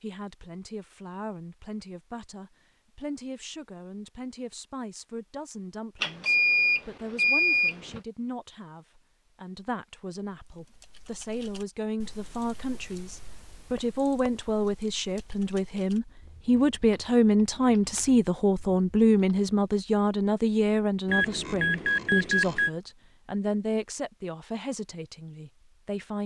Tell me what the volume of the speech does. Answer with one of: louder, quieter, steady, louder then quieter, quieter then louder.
louder then quieter.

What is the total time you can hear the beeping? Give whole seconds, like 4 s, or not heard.
4 s.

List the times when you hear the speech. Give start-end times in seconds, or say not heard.
0.0-26.2.